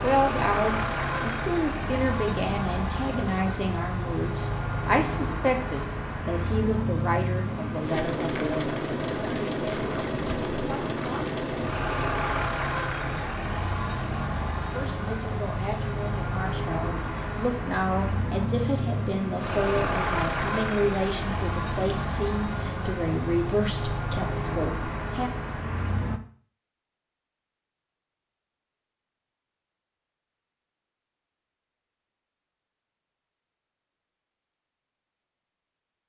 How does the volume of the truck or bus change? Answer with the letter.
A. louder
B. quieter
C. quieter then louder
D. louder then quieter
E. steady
E.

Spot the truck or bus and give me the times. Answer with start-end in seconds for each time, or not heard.
0.0-26.2.